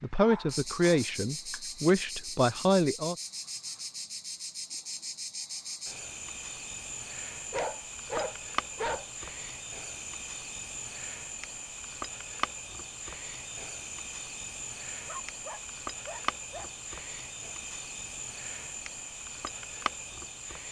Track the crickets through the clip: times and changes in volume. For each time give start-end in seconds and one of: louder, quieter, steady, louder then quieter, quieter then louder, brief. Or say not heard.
0.0-20.6 steady.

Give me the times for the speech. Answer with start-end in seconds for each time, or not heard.
0.0-3.1.